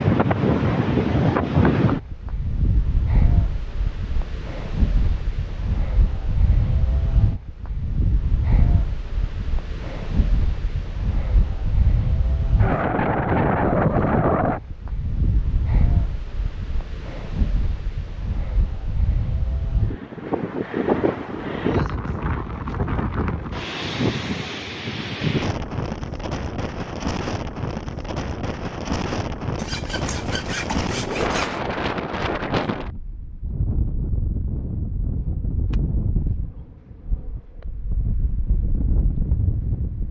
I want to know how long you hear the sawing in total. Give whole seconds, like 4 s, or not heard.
2 s.